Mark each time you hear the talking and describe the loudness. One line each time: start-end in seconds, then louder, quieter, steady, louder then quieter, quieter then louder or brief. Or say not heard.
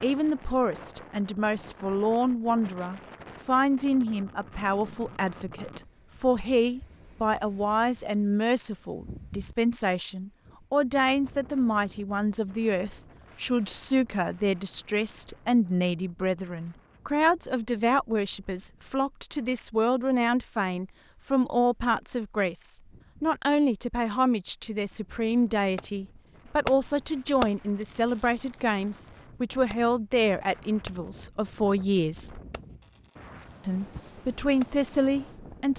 0.0-32.4 steady
33.6-35.7 brief.